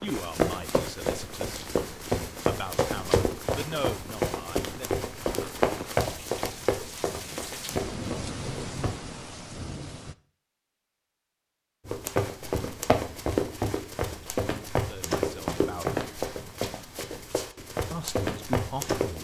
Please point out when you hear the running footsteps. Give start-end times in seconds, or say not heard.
0.1-9.0, 11.8-19.1.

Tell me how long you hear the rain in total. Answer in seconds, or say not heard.
10 s.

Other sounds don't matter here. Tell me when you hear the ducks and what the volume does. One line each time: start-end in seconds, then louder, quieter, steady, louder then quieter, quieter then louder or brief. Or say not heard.
not heard.